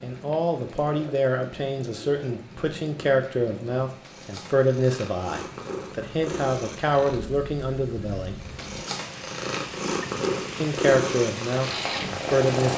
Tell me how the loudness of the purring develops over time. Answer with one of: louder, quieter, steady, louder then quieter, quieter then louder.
louder.